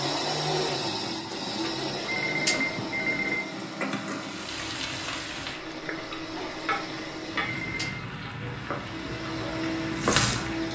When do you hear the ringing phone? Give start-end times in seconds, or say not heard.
1.6-3.4, 7.0-8.0.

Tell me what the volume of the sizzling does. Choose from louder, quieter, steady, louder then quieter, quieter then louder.
louder.